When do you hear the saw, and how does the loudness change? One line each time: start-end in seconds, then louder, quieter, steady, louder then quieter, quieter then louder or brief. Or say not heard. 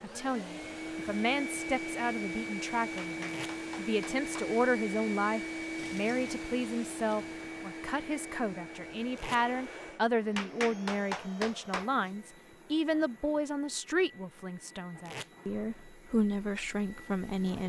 not heard.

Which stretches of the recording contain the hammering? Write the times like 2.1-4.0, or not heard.
3.0-4.5, 10.3-12.1.